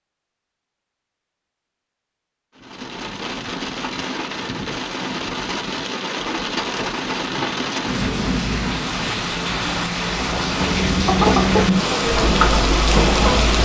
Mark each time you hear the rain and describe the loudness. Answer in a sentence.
You can hear the rain from 2.5 to 13.5 s, getting louder.